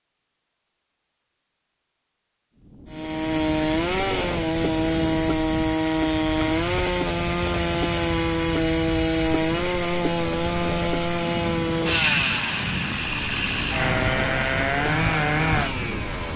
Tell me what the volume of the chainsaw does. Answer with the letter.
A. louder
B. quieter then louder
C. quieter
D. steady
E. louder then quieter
D.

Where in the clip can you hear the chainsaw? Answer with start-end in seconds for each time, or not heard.
2.9-16.3.